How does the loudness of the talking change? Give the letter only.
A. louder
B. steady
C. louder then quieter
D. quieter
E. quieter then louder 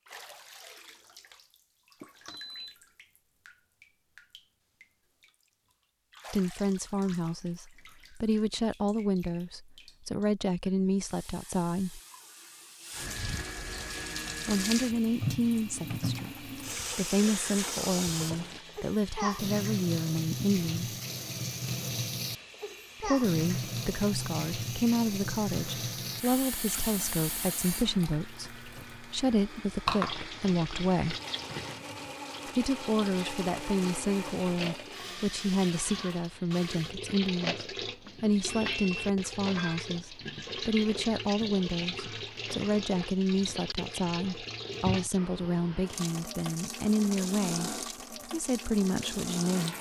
B.